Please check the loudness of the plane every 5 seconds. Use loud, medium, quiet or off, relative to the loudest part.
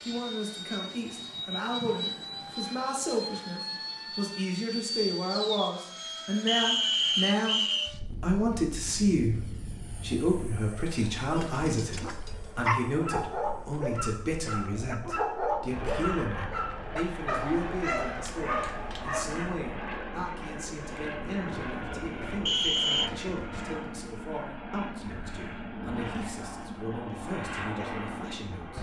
loud, loud, medium, loud, loud, loud.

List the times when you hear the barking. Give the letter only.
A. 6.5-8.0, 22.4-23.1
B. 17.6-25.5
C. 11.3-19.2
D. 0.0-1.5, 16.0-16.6
C.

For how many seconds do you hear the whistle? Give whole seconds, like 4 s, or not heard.
2 s.